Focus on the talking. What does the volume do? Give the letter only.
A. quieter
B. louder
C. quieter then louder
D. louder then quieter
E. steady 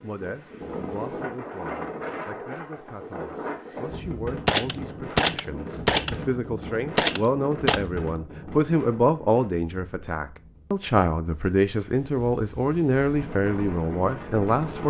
B.